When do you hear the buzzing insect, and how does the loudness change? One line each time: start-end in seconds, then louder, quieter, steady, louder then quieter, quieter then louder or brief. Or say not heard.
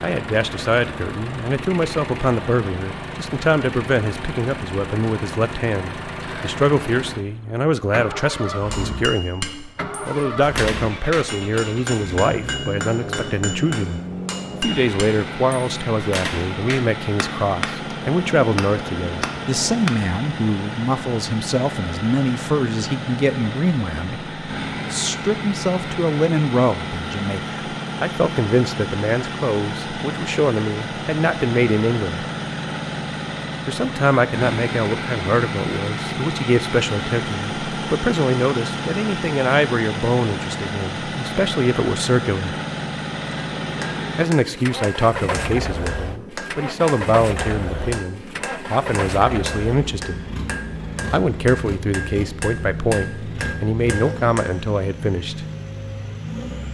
not heard.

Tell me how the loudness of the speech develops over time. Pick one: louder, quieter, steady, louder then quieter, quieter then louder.
steady.